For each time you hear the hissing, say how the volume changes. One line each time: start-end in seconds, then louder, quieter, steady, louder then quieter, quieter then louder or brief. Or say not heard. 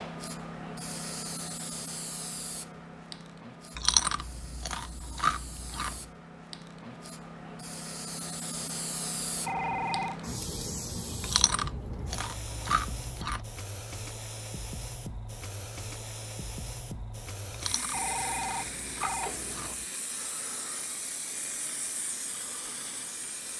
0.0-23.5 steady.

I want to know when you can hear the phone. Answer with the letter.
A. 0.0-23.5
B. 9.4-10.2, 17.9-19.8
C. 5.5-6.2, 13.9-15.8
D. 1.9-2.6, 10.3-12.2
B.